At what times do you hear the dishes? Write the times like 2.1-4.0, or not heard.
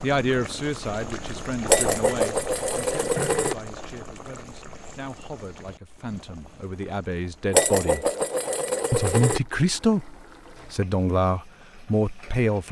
1.6-3.5, 7.5-9.4.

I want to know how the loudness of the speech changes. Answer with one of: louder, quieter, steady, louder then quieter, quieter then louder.
quieter then louder.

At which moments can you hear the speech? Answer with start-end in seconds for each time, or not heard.
0.0-8.1, 8.9-12.6.